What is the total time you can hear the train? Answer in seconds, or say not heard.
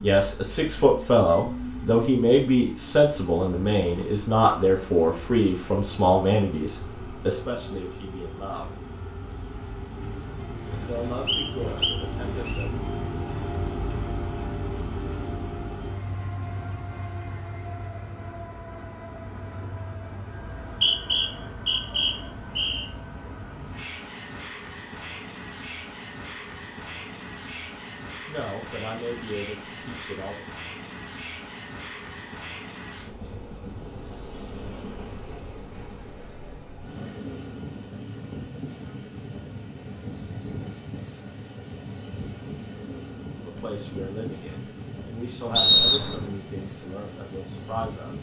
48 s.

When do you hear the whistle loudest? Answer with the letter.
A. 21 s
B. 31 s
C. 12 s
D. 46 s
D.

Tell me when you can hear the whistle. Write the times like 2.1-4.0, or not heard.
11.2-12.7, 20.4-22.9, 45.5-46.2.